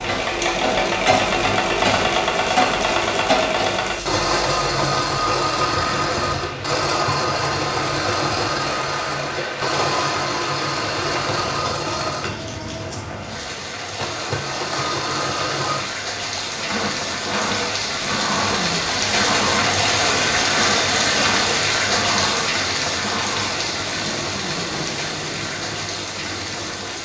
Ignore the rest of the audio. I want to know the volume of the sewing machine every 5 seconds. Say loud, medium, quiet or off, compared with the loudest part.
loud, loud, medium, medium, medium, quiet.